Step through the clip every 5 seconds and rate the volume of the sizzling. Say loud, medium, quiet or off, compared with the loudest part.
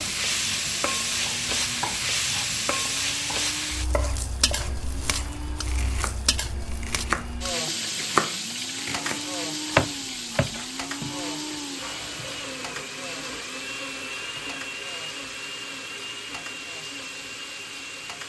loud, medium, medium, quiet.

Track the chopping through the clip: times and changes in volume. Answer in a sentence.
You can hear the chopping from 1.2 to 12.5 s, getting louder then quieter.